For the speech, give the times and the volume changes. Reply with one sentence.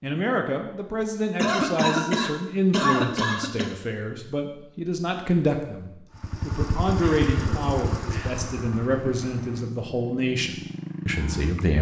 The speech can be heard from 0.0 to 11.7 s, at a steady volume.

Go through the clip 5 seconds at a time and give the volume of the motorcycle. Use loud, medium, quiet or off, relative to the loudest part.
off, loud, loud.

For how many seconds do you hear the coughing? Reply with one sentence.
The coughing can be heard for 4 seconds in total.